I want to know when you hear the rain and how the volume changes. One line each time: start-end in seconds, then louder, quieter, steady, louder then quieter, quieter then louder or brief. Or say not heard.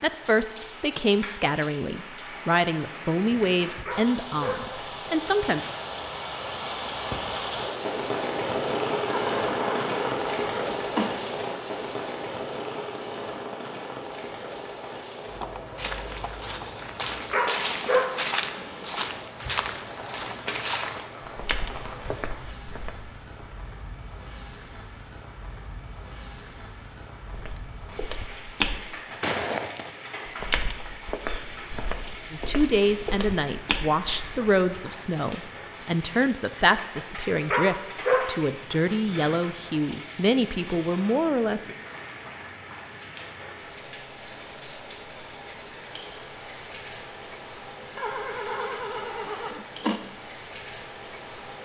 0.0-51.6 quieter.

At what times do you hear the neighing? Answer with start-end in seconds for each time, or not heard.
9.1-11.1, 48.0-50.0.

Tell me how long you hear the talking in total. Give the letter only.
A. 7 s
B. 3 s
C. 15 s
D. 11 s
C.